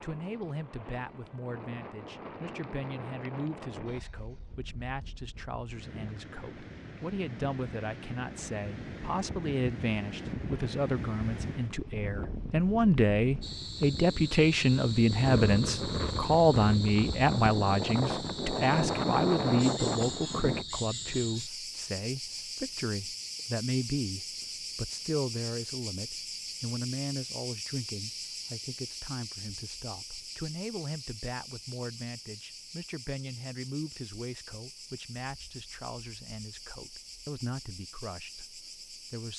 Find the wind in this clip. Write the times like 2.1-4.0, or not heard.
0.0-20.6.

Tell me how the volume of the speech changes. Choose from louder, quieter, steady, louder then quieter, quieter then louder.
louder then quieter.